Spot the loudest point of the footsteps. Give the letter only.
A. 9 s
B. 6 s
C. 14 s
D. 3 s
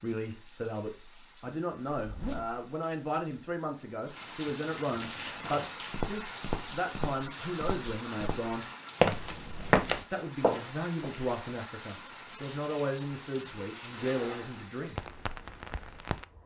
A.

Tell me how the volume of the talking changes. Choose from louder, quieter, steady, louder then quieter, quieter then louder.
steady.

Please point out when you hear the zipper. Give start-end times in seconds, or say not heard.
1.9-2.6, 13.9-14.8.